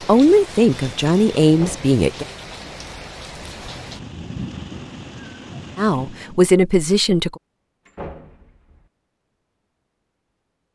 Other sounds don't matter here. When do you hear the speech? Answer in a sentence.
The speech can be heard from 0.1 to 2.2 s and from 5.8 to 7.3 s.